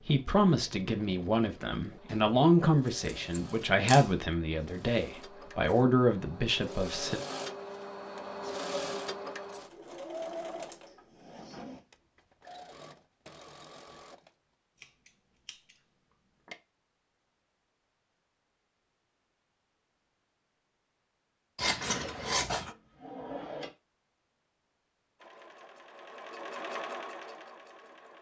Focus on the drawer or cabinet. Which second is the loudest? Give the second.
23 s.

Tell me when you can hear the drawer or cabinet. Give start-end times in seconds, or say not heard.
10.8-11.8, 22.0-23.7.